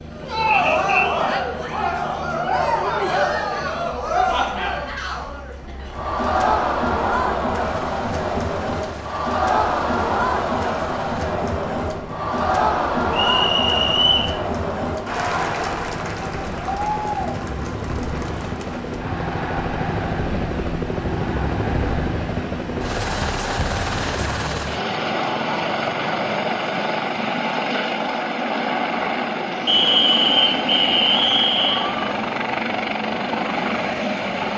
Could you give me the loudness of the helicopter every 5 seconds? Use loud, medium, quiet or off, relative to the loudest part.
quiet, quiet, quiet, medium, loud, loud, loud.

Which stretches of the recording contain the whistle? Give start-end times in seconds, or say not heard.
0.5-1.1, 13.1-14.3, 29.6-31.9.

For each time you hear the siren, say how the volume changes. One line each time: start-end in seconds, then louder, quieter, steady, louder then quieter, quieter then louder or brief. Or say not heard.
not heard.